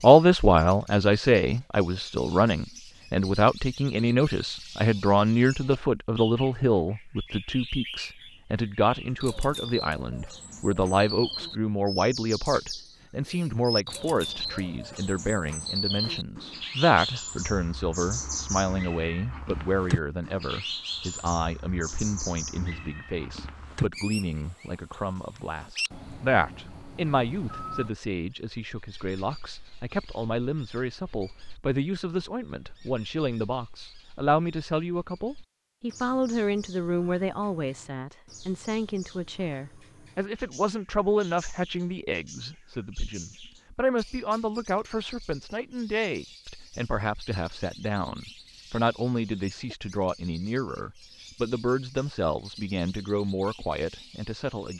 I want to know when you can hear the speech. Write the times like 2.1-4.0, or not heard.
0.0-54.7.